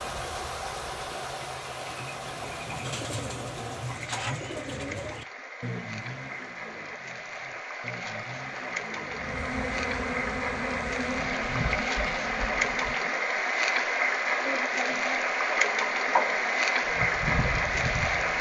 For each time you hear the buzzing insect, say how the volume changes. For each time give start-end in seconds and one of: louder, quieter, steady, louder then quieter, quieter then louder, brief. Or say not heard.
9.1-18.3 quieter then louder.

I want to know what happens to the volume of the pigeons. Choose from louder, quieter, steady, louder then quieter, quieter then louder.
quieter then louder.